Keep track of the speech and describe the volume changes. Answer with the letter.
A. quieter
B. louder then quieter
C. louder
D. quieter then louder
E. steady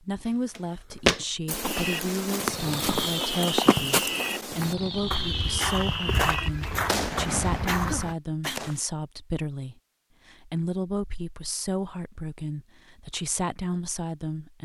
E.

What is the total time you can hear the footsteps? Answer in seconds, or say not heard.
8 s.